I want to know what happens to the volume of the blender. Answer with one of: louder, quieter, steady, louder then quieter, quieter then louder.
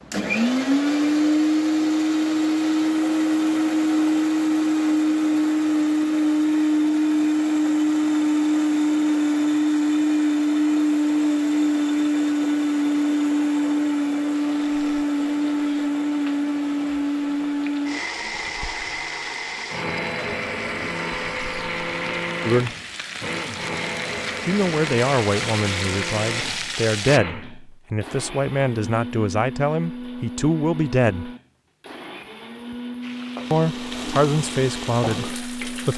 quieter.